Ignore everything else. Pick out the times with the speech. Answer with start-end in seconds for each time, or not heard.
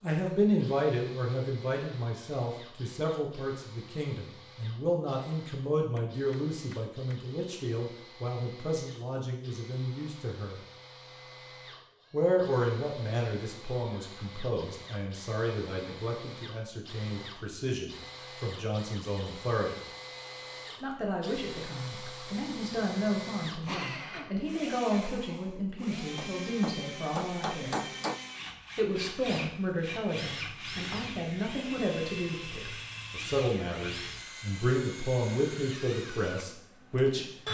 0.0-10.6, 12.1-19.8, 20.8-27.9, 28.8-37.4.